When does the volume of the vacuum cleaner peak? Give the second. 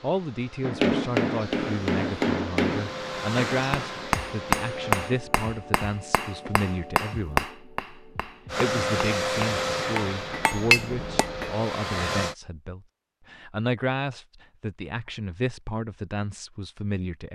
9 s.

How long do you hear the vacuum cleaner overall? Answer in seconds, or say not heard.
9 s.